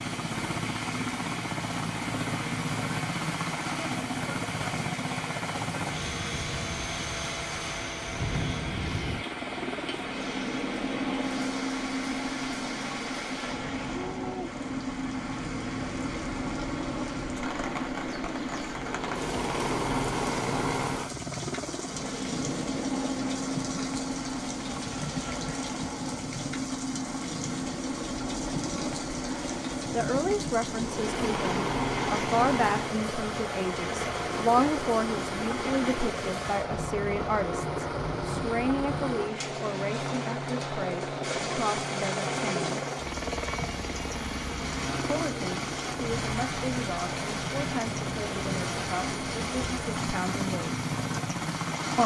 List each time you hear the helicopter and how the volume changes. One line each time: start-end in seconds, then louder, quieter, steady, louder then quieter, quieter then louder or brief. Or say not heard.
0.0-52.0 steady.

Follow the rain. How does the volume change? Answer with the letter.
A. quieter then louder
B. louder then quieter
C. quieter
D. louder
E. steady
E.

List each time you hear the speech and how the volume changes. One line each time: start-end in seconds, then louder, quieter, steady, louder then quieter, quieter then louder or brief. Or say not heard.
29.9-42.9 quieter
45.0-50.8 steady.